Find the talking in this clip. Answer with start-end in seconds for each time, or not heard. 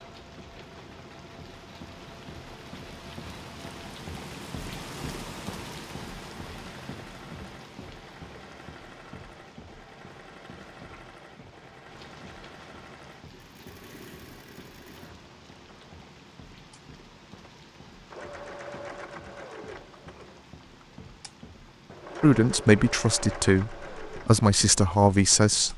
22.2-25.7.